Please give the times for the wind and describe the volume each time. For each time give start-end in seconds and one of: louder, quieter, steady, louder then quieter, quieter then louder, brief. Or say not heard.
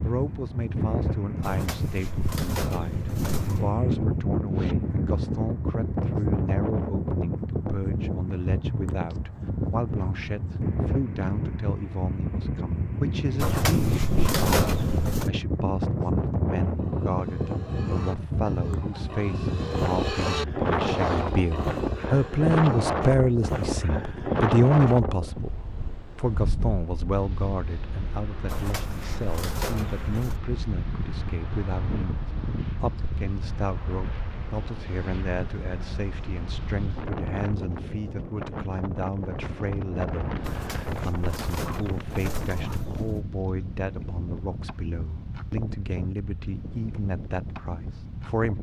0.0-48.5 quieter.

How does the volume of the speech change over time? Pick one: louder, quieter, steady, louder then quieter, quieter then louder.
louder then quieter.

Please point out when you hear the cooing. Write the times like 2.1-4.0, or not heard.
1.4-3.7, 13.3-15.3, 28.4-30.4, 40.4-43.2.